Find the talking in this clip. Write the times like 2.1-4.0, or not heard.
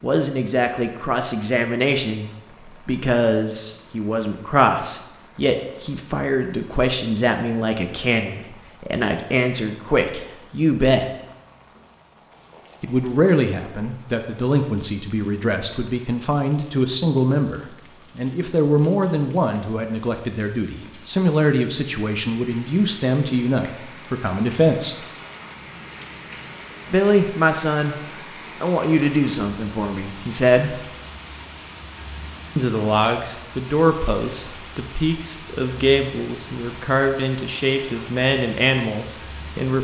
0.0-11.1, 12.8-25.1, 26.9-27.9, 28.6-30.9, 32.5-39.8.